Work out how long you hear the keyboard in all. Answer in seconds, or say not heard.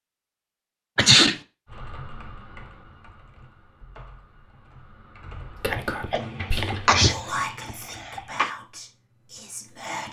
6 s.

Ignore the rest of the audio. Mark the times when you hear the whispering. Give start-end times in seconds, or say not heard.
5.6-10.0.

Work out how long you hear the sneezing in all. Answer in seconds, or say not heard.
3 s.